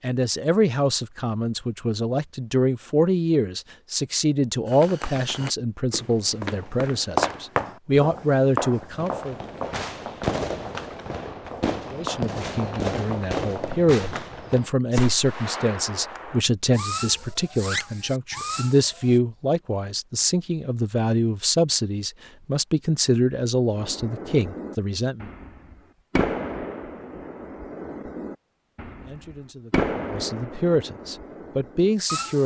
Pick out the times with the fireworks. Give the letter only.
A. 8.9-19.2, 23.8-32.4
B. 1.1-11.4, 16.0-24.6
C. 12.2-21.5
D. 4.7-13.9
A.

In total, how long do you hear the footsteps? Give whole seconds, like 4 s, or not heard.
9 s.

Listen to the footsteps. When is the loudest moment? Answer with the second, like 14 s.
7 s.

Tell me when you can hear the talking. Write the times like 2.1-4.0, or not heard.
0.0-9.3, 11.9-25.3, 28.9-32.4.